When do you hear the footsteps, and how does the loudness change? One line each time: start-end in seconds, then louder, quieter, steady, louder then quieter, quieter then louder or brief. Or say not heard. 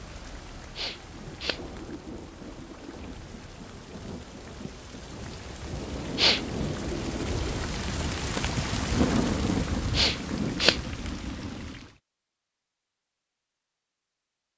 not heard.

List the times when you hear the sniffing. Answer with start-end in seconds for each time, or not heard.
0.8-1.6, 6.2-6.8, 9.9-10.8.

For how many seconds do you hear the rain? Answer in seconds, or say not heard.
12 s.